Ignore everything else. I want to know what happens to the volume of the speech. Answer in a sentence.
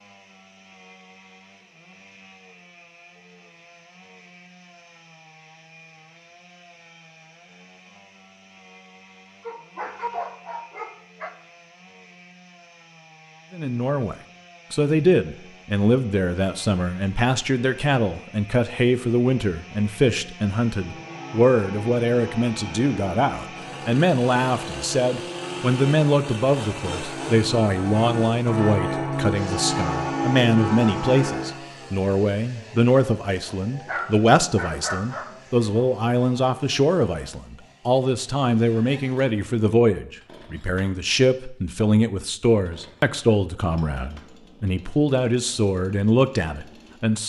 The loudness of the speech stays about the same.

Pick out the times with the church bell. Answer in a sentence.
You can hear the church bell from 20.7 to 31.6 s.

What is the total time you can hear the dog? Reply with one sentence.
The dog can be heard for 4 seconds in total.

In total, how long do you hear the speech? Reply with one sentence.
The speech can be heard for 34 seconds in total.